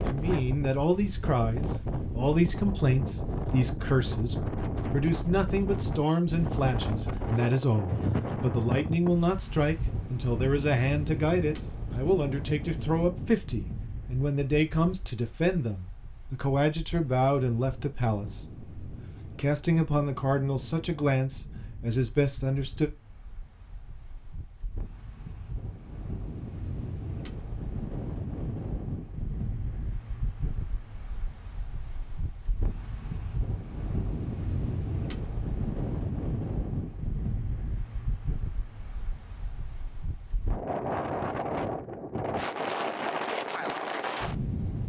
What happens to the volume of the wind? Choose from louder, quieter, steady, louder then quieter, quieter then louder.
quieter then louder.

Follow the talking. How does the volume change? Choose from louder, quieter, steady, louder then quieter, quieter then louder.
steady.